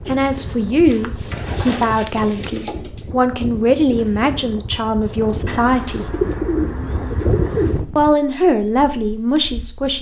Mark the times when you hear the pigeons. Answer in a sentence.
You can hear the pigeons from 0.8 to 3.0 s and from 5.5 to 7.8 s.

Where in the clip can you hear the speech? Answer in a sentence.
You can hear the speech from 0.0 to 6.2 s and from 8.0 to 9.9 s.